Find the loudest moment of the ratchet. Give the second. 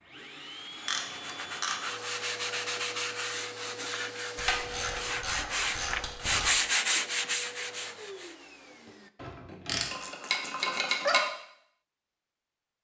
11 s.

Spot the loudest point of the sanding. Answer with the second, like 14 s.
7 s.